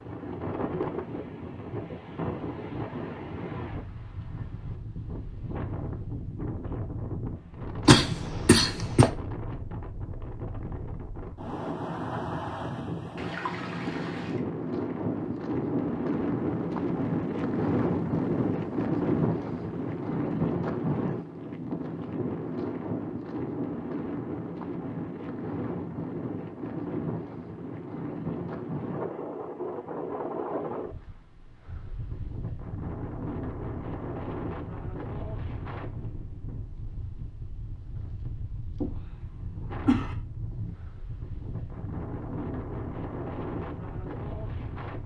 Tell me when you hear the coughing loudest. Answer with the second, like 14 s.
8 s.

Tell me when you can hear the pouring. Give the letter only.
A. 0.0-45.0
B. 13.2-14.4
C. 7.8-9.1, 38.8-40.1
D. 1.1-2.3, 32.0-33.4
B.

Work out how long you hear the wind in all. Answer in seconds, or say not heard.
45 s.